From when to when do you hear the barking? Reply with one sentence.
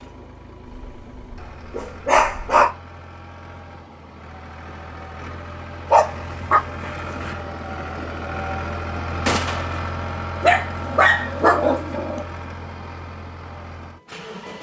You can hear the barking from 0.7 to 2.7 s, from 5.9 to 7.3 s and from 10.4 to 12.2 s.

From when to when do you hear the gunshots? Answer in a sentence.
The gunshots can be heard from 9.2 to 9.9 s.